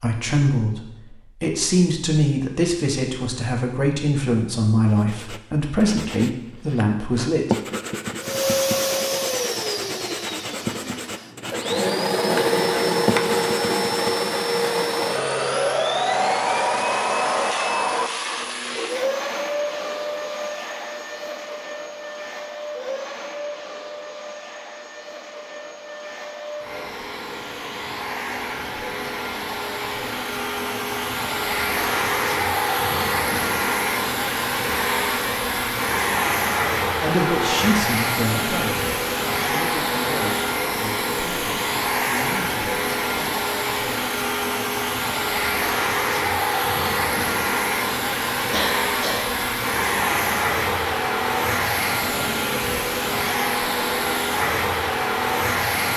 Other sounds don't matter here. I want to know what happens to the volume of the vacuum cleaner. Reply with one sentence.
The loudness of the vacuum cleaner goes down, then up.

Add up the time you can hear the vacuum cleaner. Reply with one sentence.
The vacuum cleaner can be heard for 48 seconds in total.